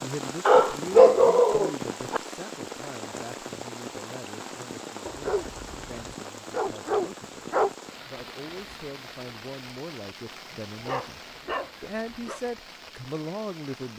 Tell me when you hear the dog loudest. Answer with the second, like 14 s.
1 s.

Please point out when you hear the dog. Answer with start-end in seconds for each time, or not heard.
0.5-2.2, 5.0-7.7, 10.8-12.4.